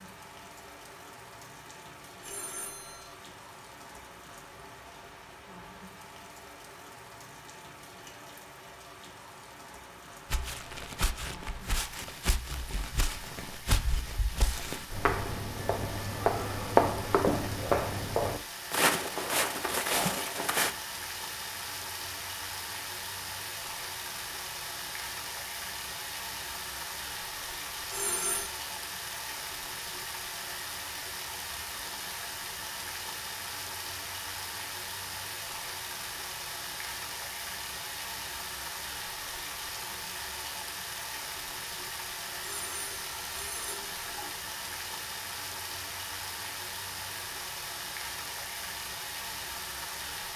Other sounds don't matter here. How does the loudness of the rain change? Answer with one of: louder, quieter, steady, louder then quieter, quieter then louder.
louder.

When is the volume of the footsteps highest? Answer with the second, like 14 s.
17 s.